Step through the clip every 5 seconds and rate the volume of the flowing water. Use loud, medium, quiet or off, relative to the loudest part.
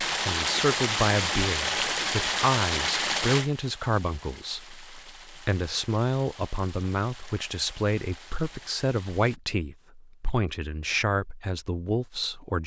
loud, quiet, off.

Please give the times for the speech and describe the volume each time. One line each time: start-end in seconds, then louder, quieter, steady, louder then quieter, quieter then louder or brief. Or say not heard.
0.1-12.6 steady.